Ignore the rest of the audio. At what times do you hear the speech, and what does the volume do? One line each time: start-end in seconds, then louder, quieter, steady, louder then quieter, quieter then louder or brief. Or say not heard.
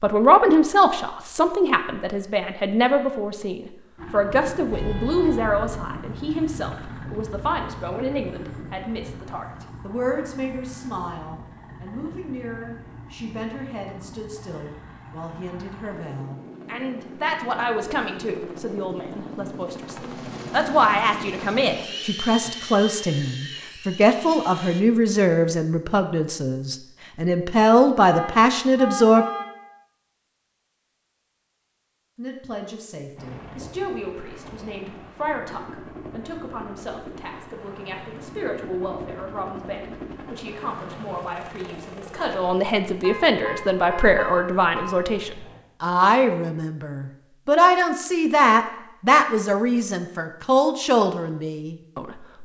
0.0-29.2 quieter then louder
32.1-52.3 louder.